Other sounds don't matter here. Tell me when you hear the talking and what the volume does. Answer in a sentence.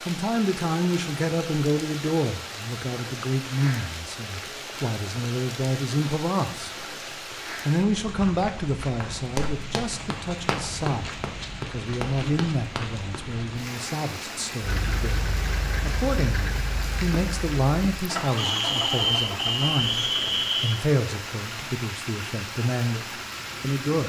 You can hear the talking from 0.1 to 6.8 s, getting quieter then louder; and from 7.7 to 24.0 s, at a steady volume.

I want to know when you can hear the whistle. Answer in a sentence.
You can hear the whistle from 18.4 to 20.7 s.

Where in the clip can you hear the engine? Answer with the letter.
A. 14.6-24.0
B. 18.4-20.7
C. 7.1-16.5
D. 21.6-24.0
A.